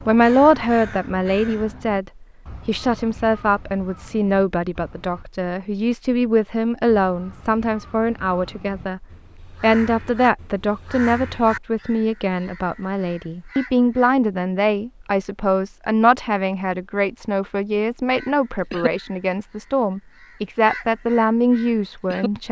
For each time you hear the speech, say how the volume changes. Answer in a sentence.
The speech can be heard from 0.1 to 22.4 s, at a steady volume.